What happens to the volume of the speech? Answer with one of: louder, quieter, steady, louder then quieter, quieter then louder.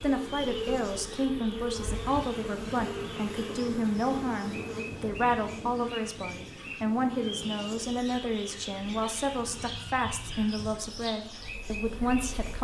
steady.